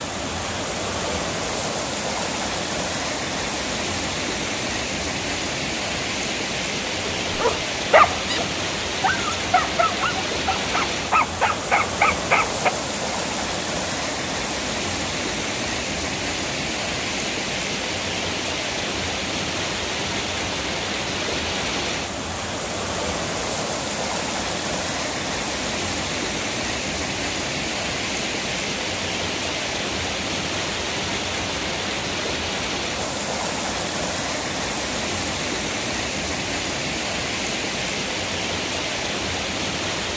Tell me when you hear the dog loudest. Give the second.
8 s.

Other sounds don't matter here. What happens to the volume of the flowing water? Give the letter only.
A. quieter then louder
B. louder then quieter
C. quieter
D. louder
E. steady
E.